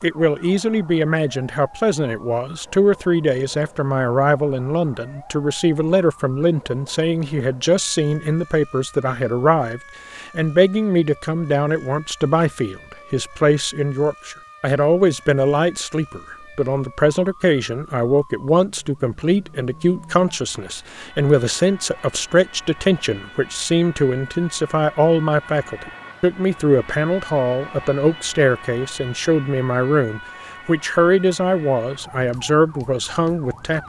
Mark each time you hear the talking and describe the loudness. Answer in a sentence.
The talking can be heard from 0.0 to 33.8 s, at a steady volume.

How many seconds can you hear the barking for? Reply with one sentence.
You can't hear the barking here.